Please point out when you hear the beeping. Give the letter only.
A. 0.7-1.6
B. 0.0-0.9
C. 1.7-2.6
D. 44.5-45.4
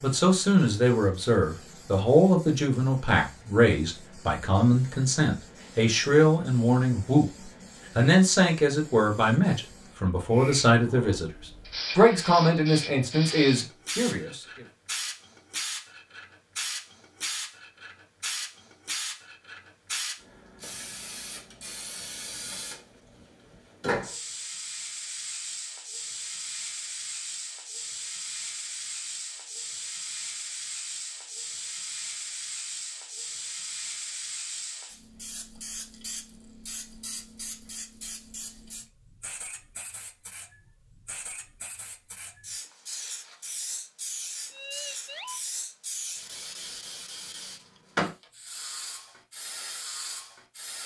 D.